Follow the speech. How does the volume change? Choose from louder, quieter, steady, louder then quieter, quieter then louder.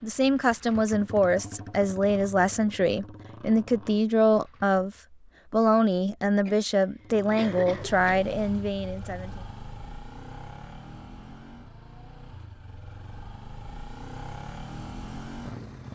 steady.